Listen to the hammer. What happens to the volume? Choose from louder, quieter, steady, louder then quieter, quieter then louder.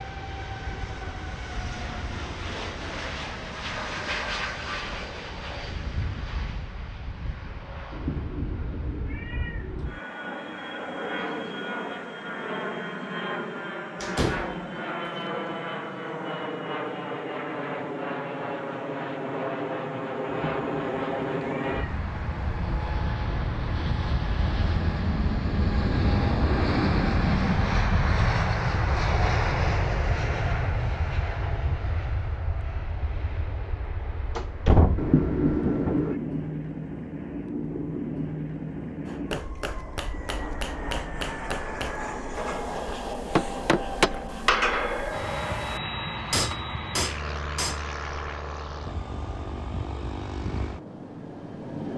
louder.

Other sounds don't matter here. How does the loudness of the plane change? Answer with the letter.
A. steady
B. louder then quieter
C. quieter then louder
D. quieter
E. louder
B.